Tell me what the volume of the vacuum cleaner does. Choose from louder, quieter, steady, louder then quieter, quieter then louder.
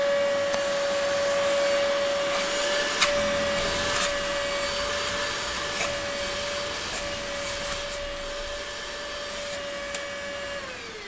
quieter.